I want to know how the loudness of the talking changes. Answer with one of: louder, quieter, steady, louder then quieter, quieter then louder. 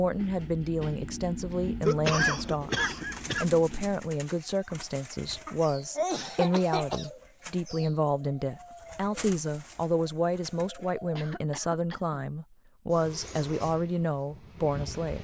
steady.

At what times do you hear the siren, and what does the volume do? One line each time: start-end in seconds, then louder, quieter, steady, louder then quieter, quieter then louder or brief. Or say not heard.
not heard.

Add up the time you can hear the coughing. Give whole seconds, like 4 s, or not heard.
4 s.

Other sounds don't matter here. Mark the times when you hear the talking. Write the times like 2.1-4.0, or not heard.
0.0-15.1.